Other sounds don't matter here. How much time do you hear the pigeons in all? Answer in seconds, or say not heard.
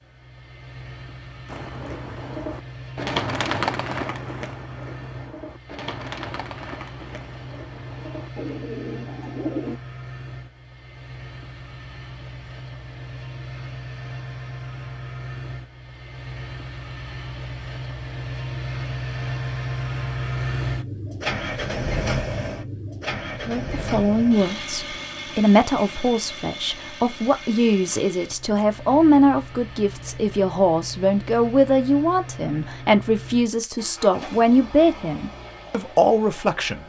8 s.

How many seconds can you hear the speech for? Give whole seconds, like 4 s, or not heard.
13 s.